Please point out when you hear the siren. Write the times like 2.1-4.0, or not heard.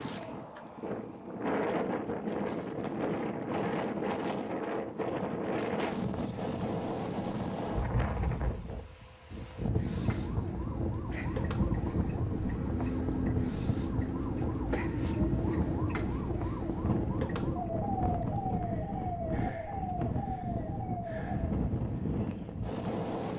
9.8-21.6.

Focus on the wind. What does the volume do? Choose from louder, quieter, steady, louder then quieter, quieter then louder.
steady.